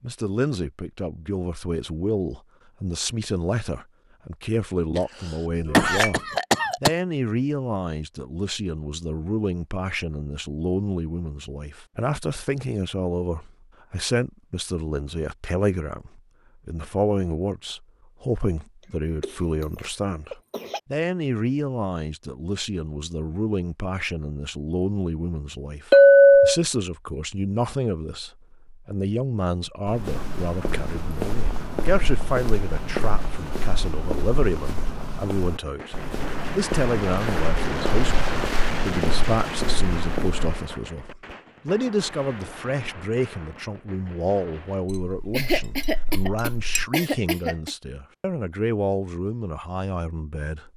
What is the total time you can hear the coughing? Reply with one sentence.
You can hear the coughing for 6 seconds altogether.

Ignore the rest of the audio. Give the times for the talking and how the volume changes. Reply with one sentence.
You can hear the talking from 0.0 to 50.7 s, at a steady volume.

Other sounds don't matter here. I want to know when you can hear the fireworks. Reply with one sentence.
You can hear the fireworks from 35.5 to 44.9 s.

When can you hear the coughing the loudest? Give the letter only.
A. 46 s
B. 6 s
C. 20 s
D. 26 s
B.